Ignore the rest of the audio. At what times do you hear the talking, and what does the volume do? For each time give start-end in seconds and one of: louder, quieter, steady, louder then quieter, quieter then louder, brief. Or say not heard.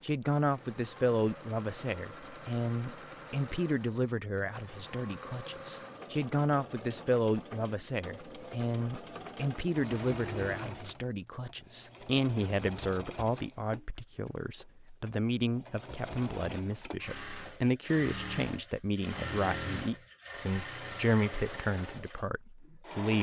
0.0-23.1 steady.